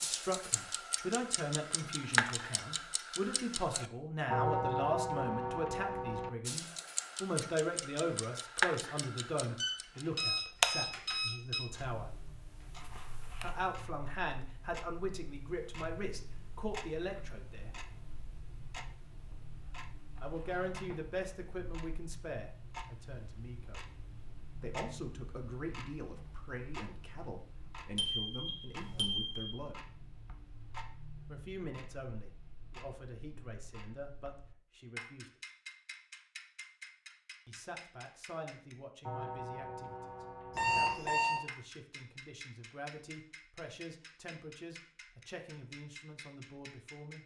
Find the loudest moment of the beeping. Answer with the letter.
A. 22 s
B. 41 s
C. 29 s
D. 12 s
B.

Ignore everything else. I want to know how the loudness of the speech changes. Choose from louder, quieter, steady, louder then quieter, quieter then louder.
quieter.